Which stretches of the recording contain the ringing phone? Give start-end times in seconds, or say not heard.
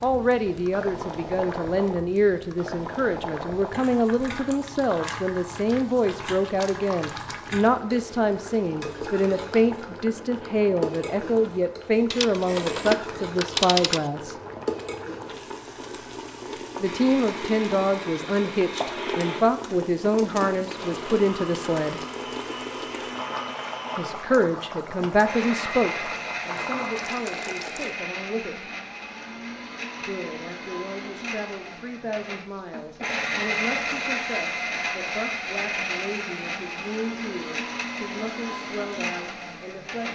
12.1-14.1.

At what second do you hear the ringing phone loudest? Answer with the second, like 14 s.
14 s.